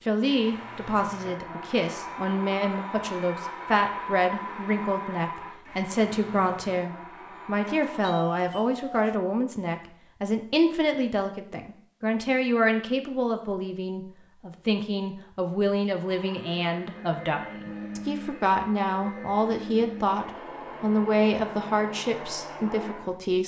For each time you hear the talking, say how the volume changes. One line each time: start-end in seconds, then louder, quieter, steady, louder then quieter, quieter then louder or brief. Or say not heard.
0.1-23.4 steady.